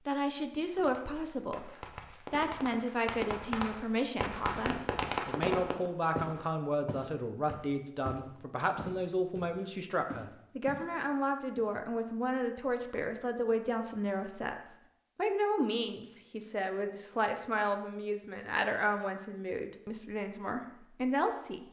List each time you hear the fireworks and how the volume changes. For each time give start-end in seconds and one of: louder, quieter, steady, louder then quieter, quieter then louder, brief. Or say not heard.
0.8-5.9 louder.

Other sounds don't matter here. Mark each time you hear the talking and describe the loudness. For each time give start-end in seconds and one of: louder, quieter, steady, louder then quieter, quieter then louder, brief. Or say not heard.
0.1-21.6 steady.